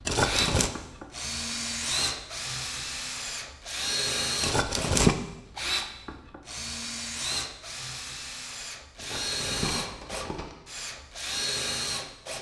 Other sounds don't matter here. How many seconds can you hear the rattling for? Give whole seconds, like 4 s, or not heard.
3 s.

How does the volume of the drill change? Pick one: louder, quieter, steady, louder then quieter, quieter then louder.
steady.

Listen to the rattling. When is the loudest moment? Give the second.
5 s.